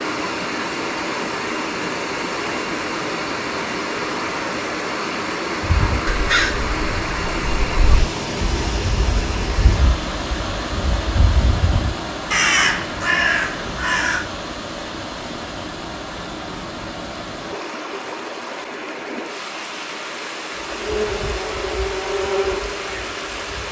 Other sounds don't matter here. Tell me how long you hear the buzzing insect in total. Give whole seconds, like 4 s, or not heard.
3 s.